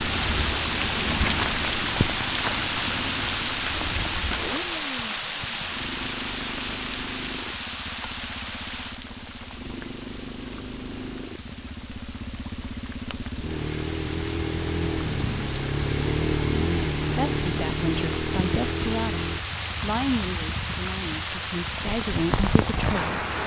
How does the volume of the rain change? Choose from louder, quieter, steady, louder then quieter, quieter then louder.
quieter then louder.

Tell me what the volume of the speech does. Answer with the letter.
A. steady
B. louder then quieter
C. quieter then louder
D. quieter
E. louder
C.